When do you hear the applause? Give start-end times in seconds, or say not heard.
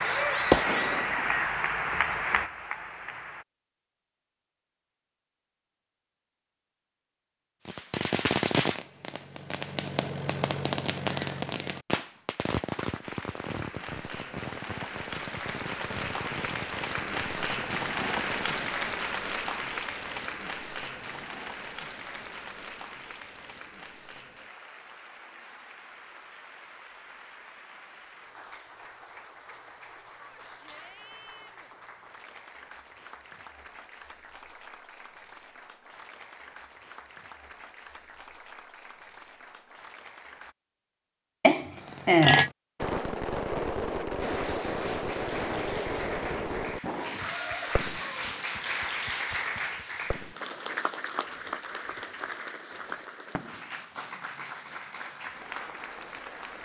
0.0-3.5, 13.0-40.5, 44.2-56.5.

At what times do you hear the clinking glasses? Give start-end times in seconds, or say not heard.
41.4-42.5.